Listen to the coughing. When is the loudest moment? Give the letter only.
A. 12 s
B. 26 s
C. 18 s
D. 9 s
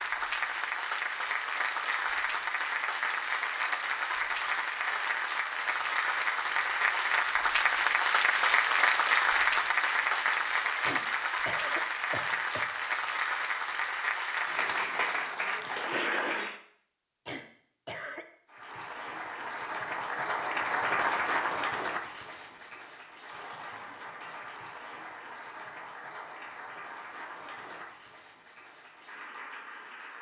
A.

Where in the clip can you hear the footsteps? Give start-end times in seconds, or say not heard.
not heard.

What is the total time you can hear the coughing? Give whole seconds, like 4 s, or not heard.
3 s.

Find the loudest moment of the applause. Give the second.
9 s.